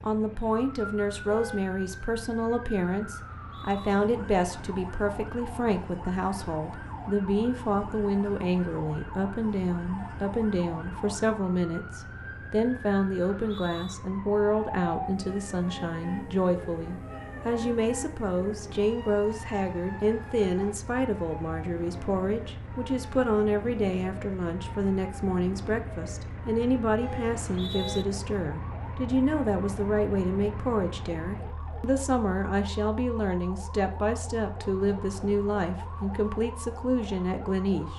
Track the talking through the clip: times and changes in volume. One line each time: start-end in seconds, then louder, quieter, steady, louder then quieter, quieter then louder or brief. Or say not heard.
0.0-37.9 steady.